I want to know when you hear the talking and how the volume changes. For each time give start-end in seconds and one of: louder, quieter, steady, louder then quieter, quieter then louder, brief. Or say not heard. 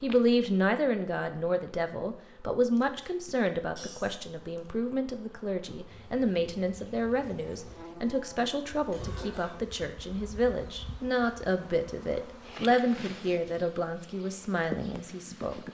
0.0-15.6 steady.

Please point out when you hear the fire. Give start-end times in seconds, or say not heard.
not heard.